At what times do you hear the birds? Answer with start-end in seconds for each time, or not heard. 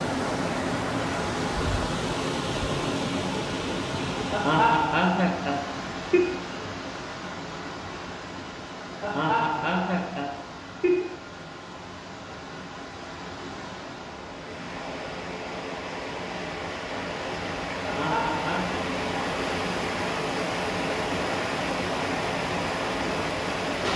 not heard.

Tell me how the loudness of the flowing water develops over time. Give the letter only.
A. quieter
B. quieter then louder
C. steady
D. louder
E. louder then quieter
B.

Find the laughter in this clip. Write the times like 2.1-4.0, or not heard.
4.3-6.2, 9.0-11.1, 17.8-18.8.